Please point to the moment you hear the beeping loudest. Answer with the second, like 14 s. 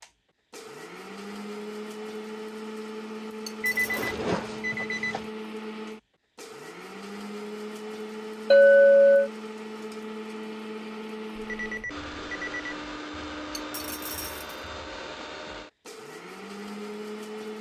4 s.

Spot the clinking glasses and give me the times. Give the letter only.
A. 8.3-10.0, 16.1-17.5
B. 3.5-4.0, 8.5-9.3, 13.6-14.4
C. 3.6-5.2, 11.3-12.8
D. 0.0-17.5
B.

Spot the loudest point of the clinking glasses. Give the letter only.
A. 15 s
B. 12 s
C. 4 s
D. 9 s
D.